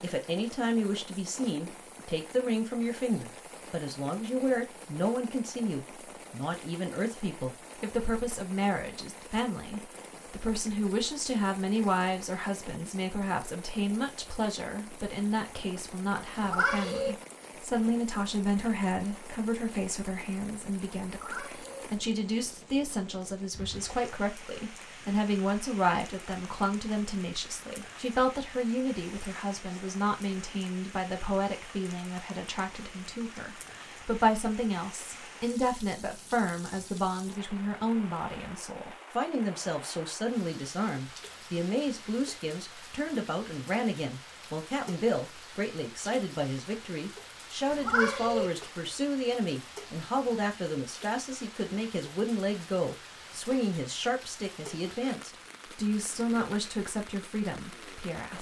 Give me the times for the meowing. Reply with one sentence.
You can hear the meowing from 16.4 to 17.1 s, from 21.1 to 21.9 s and from 47.7 to 48.5 s.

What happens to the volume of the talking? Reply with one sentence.
The volume of the talking stays about the same.